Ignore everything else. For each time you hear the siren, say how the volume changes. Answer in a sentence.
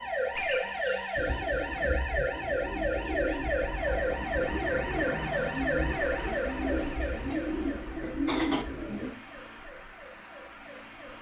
The siren can be heard from 0.0 to 11.1 s, getting quieter.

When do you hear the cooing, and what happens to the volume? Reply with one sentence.
You can hear the cooing from 1.1 to 9.2 s, getting louder.